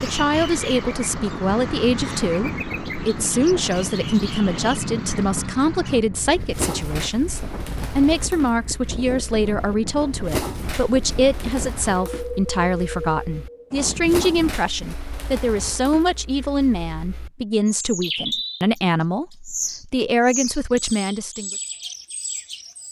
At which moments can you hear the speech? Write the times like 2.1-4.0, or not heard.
0.0-21.5.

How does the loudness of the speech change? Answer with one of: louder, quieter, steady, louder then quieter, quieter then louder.
steady.